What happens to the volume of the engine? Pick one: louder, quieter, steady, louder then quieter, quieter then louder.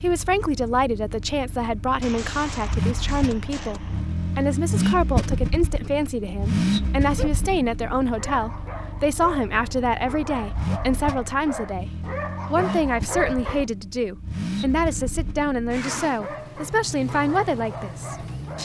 louder then quieter.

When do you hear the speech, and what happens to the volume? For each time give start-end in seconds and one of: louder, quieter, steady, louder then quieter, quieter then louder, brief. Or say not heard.
0.0-18.5 steady.